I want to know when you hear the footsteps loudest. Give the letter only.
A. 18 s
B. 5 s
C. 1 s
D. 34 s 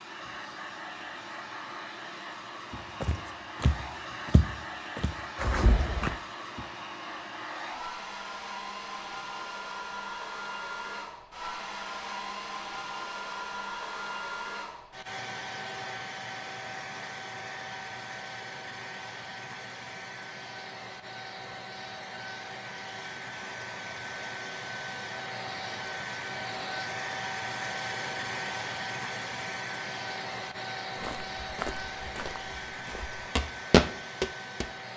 D.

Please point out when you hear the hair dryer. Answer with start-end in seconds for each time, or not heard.
0.0-34.9.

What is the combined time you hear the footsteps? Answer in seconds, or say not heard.
7 s.